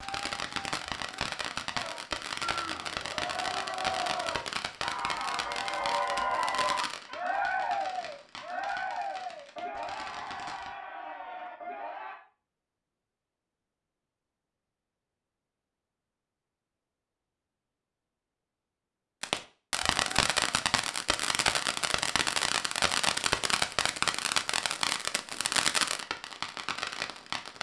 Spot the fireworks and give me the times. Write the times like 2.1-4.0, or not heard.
0.0-10.7, 19.2-27.5.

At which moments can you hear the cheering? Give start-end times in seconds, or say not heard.
1.7-12.2.